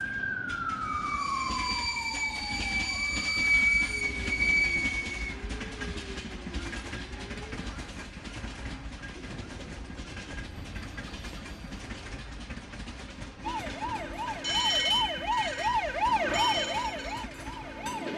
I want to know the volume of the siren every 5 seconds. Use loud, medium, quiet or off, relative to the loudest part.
medium, quiet, loud, loud.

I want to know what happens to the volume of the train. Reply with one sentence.
The loudness of the train goes down.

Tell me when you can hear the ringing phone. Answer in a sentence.
You can hear the ringing phone from 9.2 to 11.8 s.